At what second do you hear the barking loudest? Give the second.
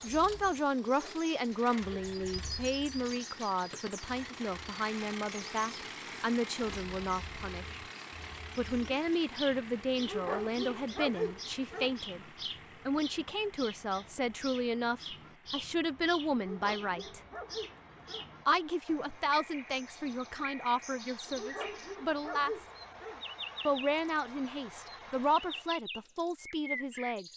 11 s.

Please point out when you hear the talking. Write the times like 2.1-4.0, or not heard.
0.0-7.8, 8.6-12.2, 12.8-17.2, 18.4-22.6, 23.6-27.2.